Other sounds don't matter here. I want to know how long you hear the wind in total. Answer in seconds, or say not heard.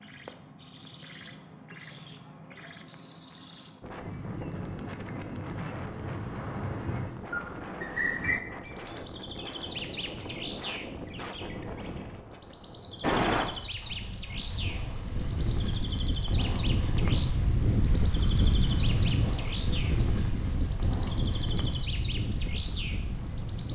20 s.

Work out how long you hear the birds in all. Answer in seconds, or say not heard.
23 s.